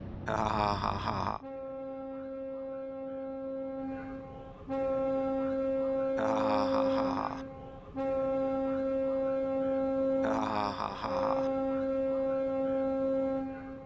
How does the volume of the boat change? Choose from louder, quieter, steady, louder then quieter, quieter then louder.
louder.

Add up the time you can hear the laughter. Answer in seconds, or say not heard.
4 s.